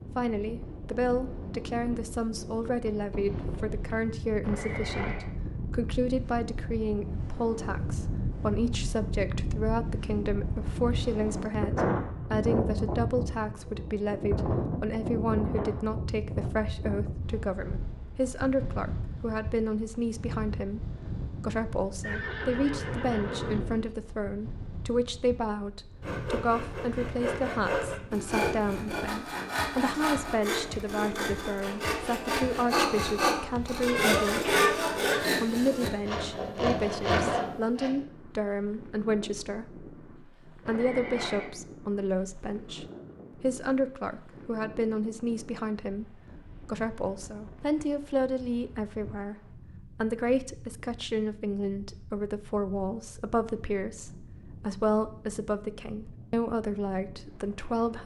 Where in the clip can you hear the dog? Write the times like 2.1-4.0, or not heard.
not heard.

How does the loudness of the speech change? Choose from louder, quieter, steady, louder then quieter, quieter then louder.
steady.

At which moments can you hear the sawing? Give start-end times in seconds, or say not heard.
26.0-37.9.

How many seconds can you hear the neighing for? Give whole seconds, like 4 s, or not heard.
4 s.